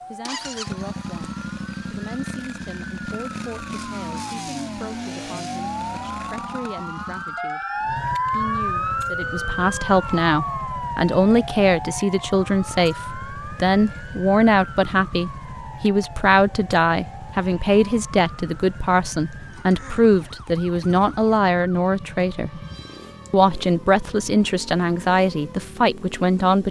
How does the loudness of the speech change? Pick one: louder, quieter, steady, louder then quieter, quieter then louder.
louder.